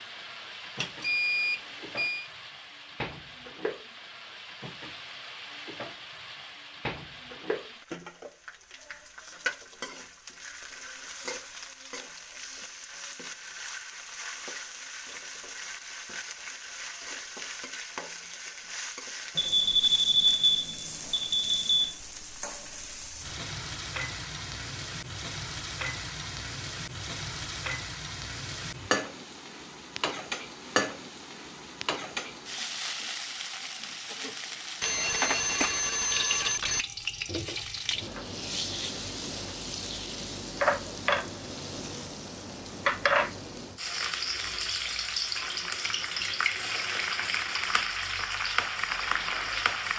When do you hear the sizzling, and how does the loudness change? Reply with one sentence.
You can hear the sizzling from 0.0 to 49.9 s, getting louder.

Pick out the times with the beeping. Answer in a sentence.
You can hear the beeping from 0.8 to 2.2 s, from 19.4 to 21.9 s and from 34.8 to 36.9 s.